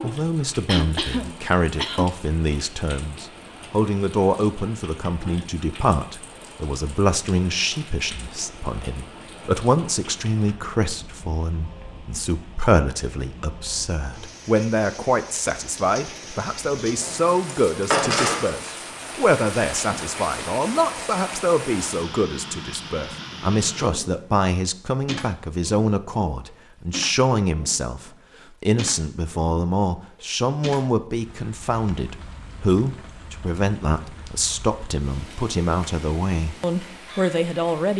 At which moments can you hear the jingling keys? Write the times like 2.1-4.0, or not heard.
17.0-18.6.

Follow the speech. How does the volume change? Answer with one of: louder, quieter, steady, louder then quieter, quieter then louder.
steady.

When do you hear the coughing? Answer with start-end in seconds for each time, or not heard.
0.7-2.0.